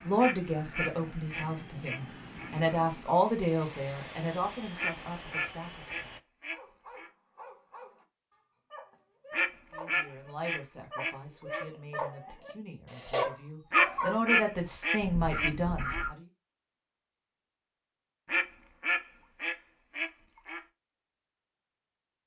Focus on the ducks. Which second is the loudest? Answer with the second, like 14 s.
14 s.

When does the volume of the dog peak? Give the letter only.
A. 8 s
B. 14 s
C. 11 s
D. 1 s
B.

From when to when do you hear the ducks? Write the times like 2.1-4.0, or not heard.
0.1-2.5, 4.8-7.1, 9.3-11.7, 13.7-16.1, 18.2-20.6.